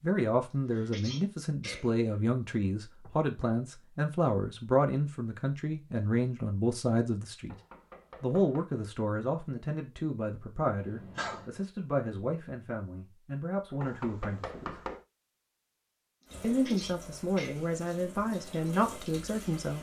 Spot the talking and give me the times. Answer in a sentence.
The talking can be heard from 0.0 to 7.5 s, from 8.2 to 14.8 s and from 16.4 to 19.7 s.